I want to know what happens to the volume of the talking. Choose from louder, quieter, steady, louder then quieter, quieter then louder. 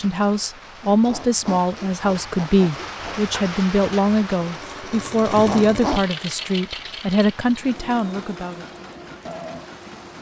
steady.